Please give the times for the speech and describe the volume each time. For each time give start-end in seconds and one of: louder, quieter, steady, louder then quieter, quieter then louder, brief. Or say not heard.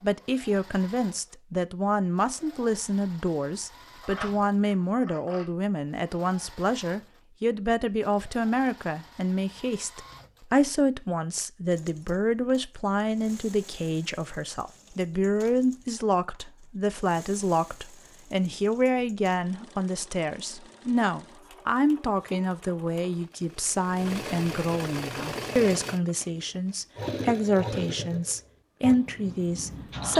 0.0-30.1 steady.